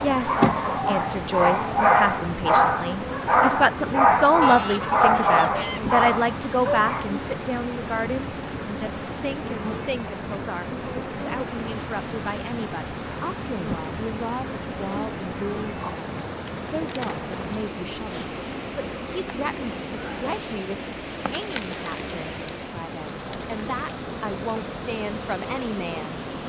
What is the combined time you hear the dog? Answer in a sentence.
The dog can be heard for 7 seconds in total.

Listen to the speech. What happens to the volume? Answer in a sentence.
The volume of the speech goes down.